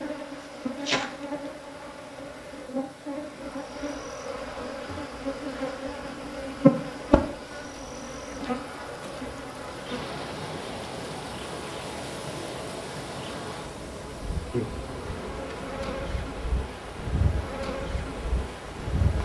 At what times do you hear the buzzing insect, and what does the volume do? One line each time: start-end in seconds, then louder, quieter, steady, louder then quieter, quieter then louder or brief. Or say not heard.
0.0-19.1 louder then quieter.